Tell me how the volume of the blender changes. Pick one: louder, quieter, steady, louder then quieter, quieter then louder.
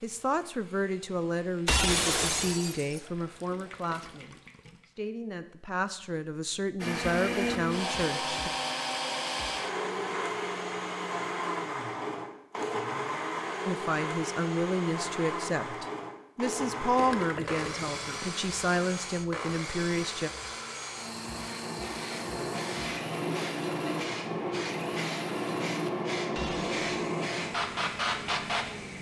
quieter.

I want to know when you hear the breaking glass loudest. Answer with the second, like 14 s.
2 s.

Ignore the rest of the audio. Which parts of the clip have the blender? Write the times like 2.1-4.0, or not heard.
6.8-28.9.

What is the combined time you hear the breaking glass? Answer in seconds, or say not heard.
2 s.